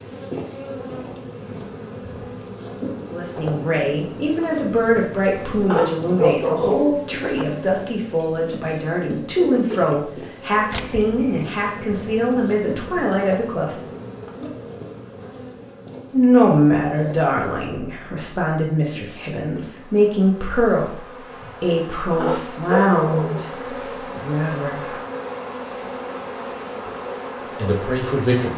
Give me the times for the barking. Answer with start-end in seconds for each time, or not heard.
5.7-7.5, 22.2-23.4.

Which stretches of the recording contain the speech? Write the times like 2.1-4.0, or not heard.
3.1-13.8, 16.1-24.9, 27.6-28.5.